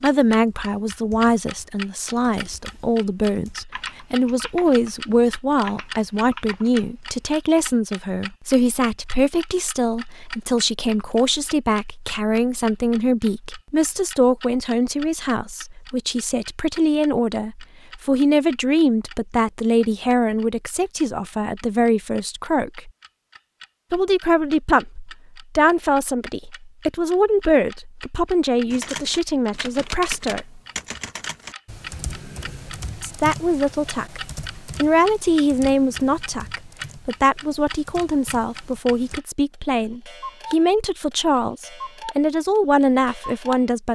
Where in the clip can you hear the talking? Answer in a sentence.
You can hear the talking from 0.0 to 22.9 s, from 23.9 to 30.6 s, from 33.0 to 34.2 s and from 34.8 to 43.9 s.